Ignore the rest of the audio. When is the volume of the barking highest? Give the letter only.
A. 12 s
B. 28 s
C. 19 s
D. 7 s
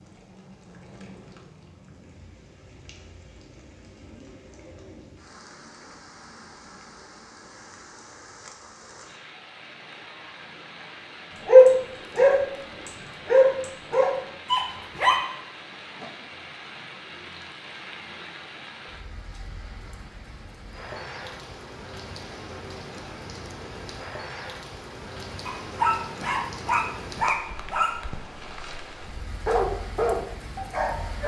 A.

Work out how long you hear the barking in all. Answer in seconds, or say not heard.
9 s.